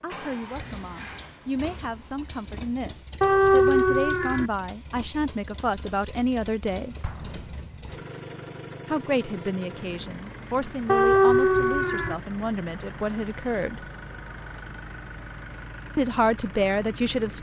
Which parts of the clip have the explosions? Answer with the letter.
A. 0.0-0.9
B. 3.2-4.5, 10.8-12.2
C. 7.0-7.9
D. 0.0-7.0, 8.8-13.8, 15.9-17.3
C.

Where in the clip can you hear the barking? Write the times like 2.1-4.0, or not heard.
3.2-4.5, 10.8-12.2.